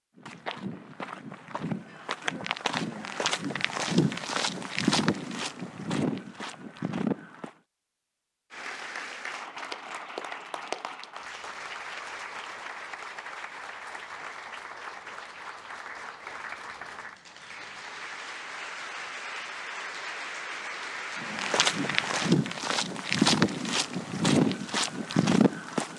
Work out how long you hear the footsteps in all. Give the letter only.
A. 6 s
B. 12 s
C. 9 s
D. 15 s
B.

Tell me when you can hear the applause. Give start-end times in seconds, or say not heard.
8.5-22.4.